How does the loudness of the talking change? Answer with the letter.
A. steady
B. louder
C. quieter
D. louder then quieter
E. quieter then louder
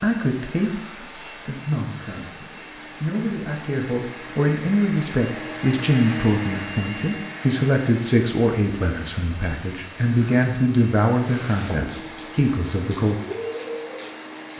B.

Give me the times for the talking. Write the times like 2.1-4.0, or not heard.
0.0-13.2.